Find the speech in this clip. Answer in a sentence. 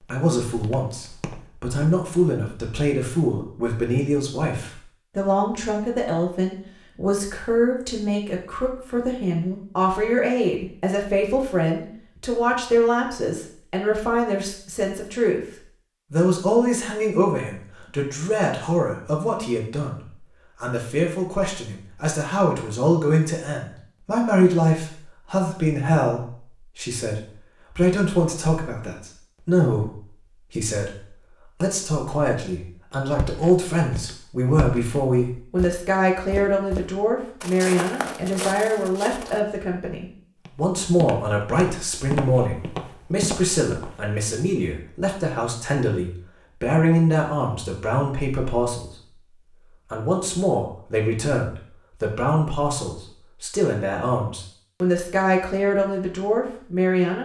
You can hear the speech from 0.0 to 15.4 s, from 16.1 to 48.9 s and from 49.9 to 57.1 s.